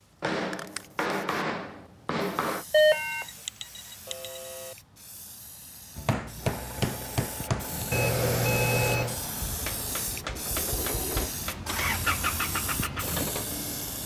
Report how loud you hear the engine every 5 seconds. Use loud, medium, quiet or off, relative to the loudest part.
off, medium, loud.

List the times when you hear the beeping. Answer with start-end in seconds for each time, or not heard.
2.7-4.8, 7.9-9.2.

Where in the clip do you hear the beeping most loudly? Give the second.
3 s.